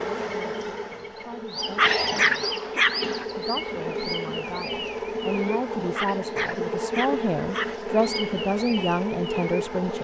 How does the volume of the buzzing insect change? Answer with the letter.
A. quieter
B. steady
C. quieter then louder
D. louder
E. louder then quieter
B.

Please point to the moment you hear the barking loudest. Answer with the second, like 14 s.
2 s.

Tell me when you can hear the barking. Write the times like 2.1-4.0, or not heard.
1.8-3.2, 6.0-7.8.